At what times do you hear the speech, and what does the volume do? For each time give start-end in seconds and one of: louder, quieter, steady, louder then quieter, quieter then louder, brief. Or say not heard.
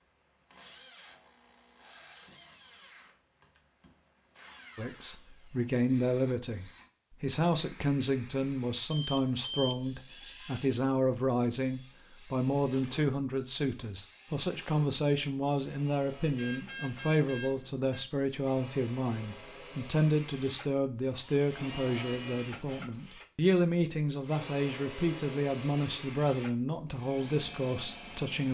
4.8-28.5 steady.